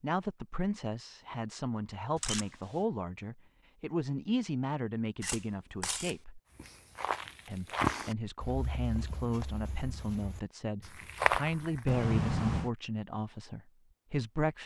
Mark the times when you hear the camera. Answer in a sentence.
The camera can be heard from 2.1 to 2.8 s, from 5.2 to 6.2 s and from 11.8 to 12.7 s.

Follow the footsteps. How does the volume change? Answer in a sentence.
The loudness of the footsteps goes down, then up.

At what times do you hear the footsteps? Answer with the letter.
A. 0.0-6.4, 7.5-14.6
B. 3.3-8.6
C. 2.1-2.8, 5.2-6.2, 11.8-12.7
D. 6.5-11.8
D.